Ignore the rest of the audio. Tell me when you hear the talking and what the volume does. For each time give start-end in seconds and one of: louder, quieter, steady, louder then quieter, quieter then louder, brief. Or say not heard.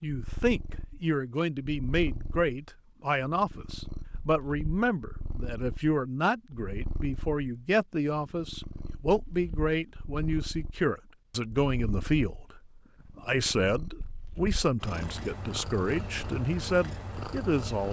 0.0-17.8 steady.